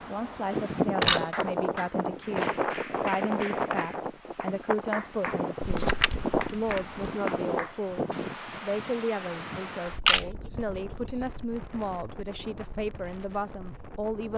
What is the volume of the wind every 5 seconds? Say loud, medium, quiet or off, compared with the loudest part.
loud, loud, quiet.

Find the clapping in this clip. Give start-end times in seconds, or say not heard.
1.3-7.8.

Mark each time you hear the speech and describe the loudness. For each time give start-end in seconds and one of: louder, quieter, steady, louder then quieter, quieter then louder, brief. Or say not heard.
0.1-14.3 steady.